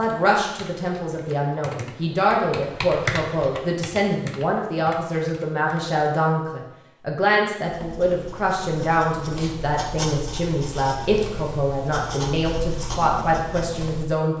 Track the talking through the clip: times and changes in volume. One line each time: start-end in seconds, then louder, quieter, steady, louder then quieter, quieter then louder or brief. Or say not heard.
0.0-14.3 steady.